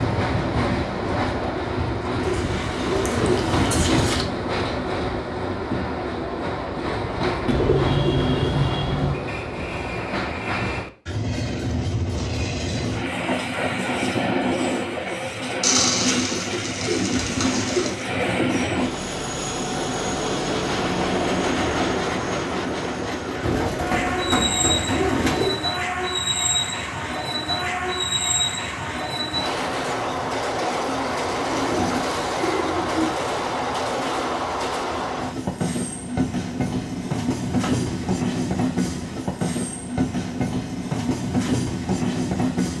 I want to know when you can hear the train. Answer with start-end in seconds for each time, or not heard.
0.0-42.7.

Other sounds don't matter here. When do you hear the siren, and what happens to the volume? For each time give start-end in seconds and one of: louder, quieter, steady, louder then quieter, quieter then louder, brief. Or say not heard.
not heard.